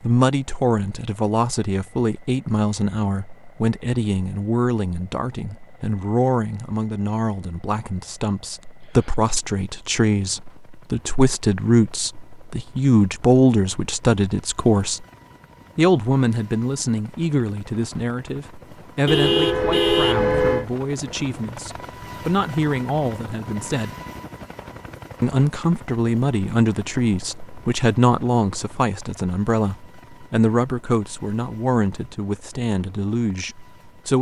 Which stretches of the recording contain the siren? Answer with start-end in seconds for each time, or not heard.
not heard.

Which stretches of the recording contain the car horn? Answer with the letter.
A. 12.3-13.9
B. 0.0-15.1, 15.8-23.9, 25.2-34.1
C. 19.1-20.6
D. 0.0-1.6
C.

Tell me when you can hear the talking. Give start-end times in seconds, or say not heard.
0.0-15.1, 15.8-23.9, 25.2-34.1.